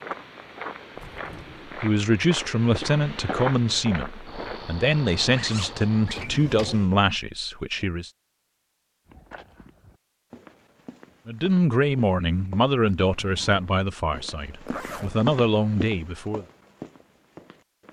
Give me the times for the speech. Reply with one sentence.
The speech can be heard from 1.8 to 8.1 s and from 11.2 to 16.4 s.